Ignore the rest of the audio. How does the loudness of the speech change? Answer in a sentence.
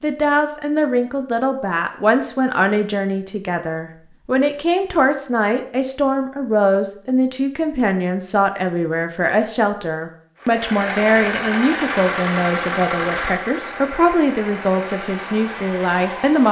The loudness of the speech stays about the same.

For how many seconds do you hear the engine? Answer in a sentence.
The engine can be heard for 6 seconds in total.